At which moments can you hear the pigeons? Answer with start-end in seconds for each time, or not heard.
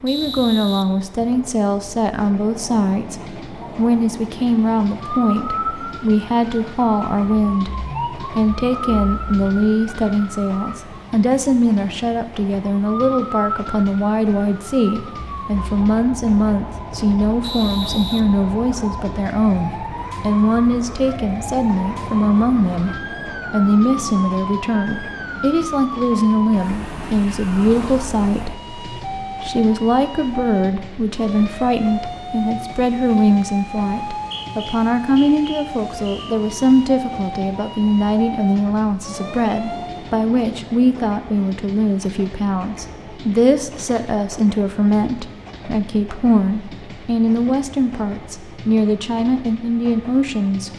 not heard.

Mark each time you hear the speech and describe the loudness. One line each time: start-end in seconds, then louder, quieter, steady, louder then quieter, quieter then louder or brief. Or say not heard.
0.0-50.7 steady.